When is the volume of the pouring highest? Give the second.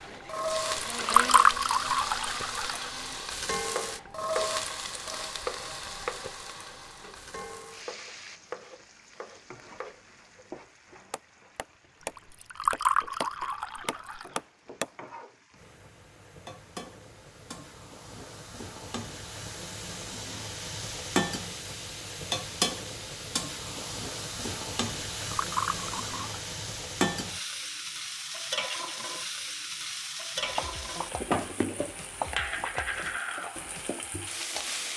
1 s.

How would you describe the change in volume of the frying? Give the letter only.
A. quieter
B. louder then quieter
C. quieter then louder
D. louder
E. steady
C.